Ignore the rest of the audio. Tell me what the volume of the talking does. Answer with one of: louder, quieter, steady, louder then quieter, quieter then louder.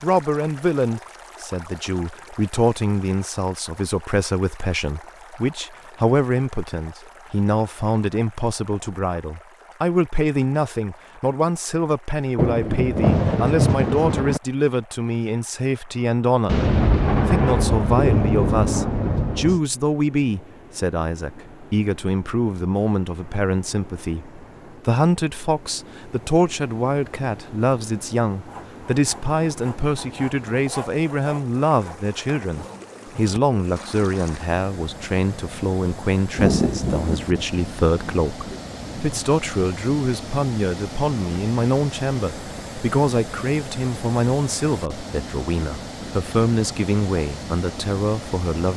steady.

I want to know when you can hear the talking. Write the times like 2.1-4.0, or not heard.
0.0-48.7.